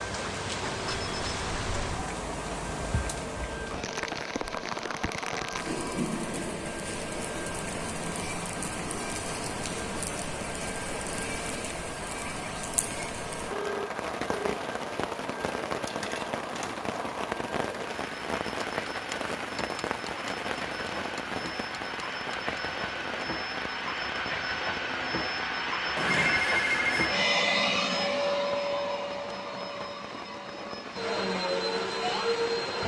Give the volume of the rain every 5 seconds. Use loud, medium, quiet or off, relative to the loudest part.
loud, loud, loud, loud, loud, medium, medium.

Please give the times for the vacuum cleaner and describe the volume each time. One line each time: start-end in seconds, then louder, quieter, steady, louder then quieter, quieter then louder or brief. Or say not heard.
0.0-32.8 louder.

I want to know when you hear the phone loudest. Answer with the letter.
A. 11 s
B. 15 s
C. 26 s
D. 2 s
C.